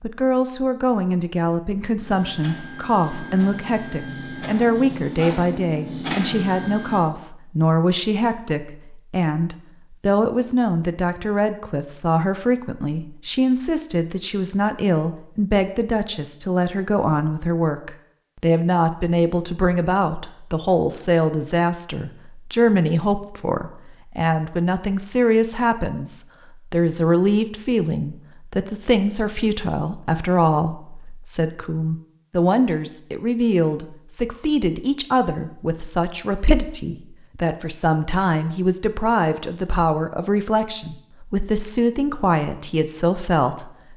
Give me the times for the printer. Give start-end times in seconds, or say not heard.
2.0-7.0.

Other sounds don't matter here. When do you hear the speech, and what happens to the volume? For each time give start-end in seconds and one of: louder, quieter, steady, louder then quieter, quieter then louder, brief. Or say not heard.
0.0-43.9 steady.